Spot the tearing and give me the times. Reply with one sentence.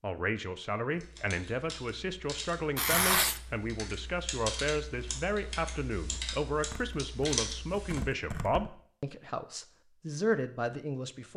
The tearing can be heard from 2.8 to 3.4 s and from 6.7 to 8.7 s.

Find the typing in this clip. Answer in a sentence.
You can hear the typing from 0.9 to 8.1 s.